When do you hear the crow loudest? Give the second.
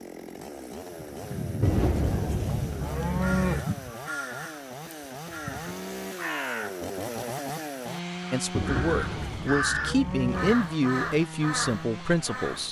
10 s.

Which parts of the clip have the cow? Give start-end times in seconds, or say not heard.
1.6-3.6, 8.5-10.6.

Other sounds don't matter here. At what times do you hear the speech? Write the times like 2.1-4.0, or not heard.
8.3-12.6.